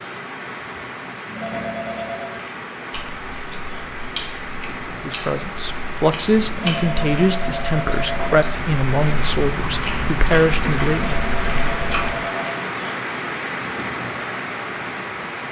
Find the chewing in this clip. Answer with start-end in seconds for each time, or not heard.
2.9-12.2.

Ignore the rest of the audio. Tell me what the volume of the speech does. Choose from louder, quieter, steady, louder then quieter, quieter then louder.
steady.